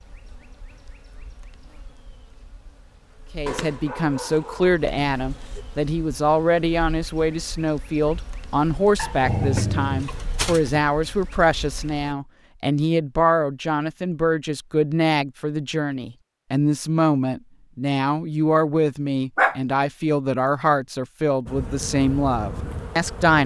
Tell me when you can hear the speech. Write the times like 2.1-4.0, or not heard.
3.4-23.4.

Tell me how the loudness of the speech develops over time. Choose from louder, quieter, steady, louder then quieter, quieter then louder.
steady.